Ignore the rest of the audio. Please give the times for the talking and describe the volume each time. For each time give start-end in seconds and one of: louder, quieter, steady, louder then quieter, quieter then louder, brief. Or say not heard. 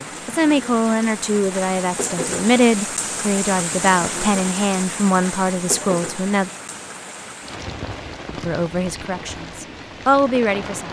0.2-6.5 steady
8.3-10.8 brief.